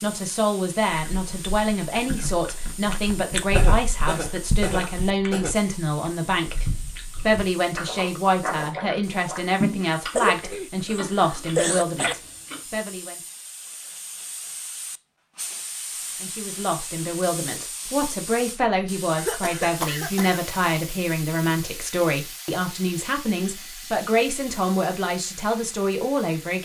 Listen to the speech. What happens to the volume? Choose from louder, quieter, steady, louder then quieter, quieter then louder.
steady.